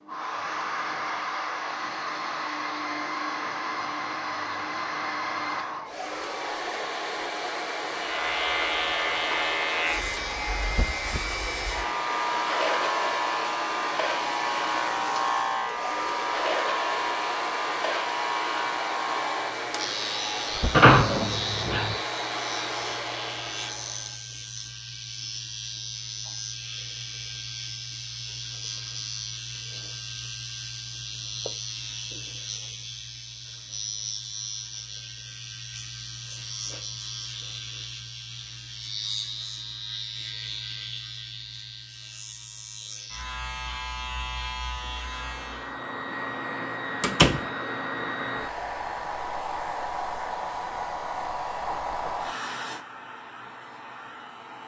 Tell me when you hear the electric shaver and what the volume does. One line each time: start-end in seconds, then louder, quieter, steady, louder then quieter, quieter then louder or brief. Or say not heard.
7.9-45.8 quieter.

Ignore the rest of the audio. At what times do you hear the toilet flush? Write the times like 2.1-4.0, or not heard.
not heard.